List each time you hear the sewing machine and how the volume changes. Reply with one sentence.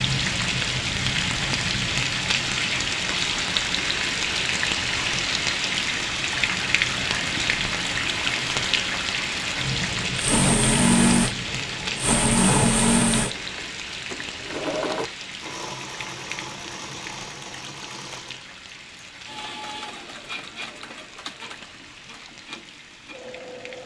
The sewing machine can be heard from 9.6 to 23.8 s, getting quieter.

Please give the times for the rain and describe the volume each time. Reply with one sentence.
You can hear the rain from 0.0 to 23.8 s, getting quieter.